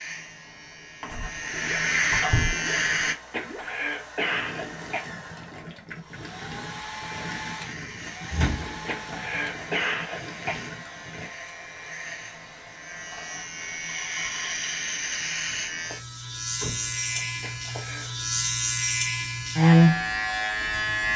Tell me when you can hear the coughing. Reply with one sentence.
You can hear the coughing from 3.0 to 5.0 s, from 8.7 to 10.6 s and from 17.1 to 18.1 s.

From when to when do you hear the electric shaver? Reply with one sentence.
The electric shaver can be heard from 0.0 to 3.1 s and from 6.8 to 21.1 s.